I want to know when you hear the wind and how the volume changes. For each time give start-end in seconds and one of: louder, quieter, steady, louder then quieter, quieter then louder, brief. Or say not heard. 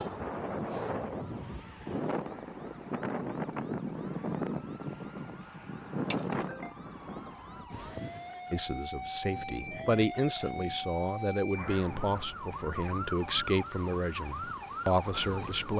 0.0-15.7 quieter.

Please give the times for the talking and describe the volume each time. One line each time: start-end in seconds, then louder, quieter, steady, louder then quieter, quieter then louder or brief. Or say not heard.
8.5-15.7 steady.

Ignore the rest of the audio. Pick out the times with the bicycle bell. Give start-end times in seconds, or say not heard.
6.1-6.7.